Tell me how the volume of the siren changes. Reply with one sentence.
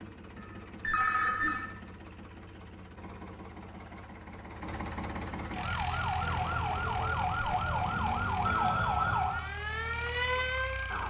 The volume of the siren stays about the same.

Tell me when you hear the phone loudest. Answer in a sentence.
The loudest moment of the phone is at 1 second.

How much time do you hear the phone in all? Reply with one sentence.
The phone can be heard for 2 seconds in total.